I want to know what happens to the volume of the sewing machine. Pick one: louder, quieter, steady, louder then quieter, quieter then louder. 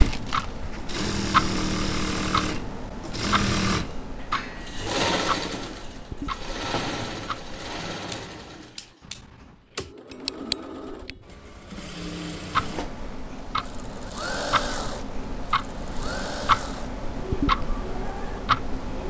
quieter.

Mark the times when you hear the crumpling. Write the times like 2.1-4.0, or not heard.
0.0-0.7.